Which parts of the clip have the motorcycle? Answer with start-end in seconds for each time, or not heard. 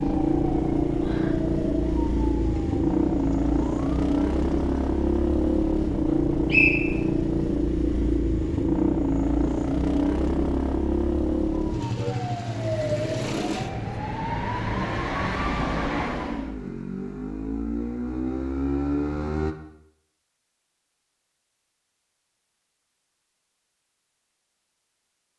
0.0-19.6.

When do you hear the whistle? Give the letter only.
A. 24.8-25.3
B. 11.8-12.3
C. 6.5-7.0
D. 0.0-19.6
C.